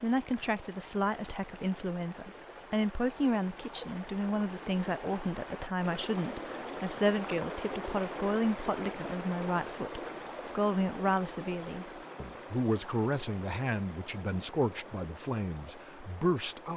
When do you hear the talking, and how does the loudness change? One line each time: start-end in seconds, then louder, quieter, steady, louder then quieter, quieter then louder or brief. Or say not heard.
0.0-16.7 steady.